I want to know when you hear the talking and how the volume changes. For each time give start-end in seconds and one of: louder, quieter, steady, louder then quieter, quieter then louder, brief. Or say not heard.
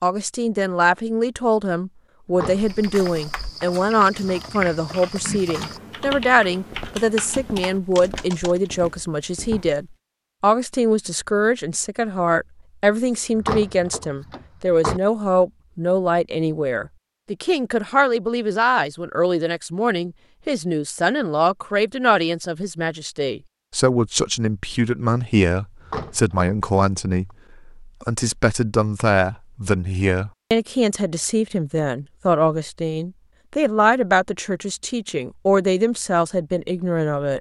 0.0-37.3 steady.